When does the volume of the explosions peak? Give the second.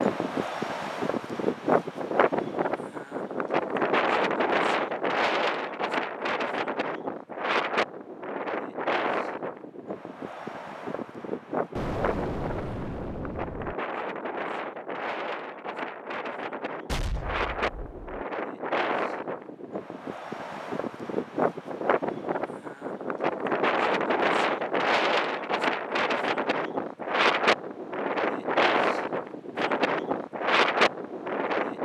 12 s.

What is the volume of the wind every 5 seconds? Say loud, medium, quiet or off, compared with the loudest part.
loud, loud, medium, medium, loud, loud, loud.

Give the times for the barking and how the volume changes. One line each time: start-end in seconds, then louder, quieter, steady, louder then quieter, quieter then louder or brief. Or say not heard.
not heard.